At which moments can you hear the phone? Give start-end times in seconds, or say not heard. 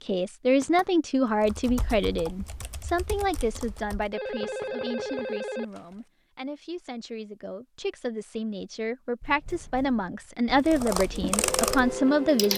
4.1-5.7.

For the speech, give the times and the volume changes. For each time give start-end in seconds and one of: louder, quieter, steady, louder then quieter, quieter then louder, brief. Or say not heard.
0.0-12.5 quieter then louder.